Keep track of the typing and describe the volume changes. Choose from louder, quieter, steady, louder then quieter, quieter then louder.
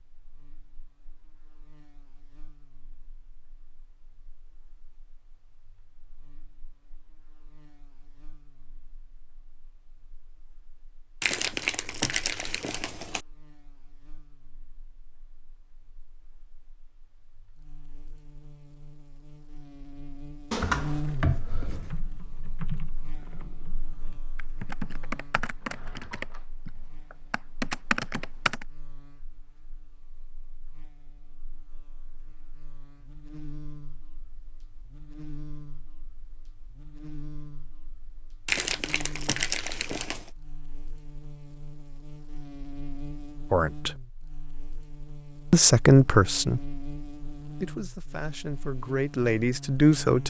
quieter then louder.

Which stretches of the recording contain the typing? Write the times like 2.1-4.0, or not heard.
21.6-28.6.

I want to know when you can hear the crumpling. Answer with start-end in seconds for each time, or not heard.
11.2-13.2, 38.5-40.3.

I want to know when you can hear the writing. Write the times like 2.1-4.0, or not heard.
not heard.